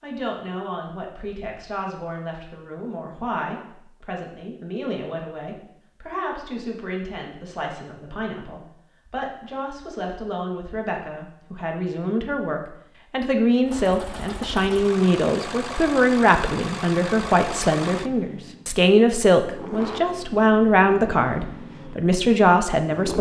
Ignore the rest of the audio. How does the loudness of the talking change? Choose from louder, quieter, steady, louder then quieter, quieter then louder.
louder.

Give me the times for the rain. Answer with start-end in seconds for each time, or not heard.
not heard.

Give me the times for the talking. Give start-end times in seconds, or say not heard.
0.0-23.1.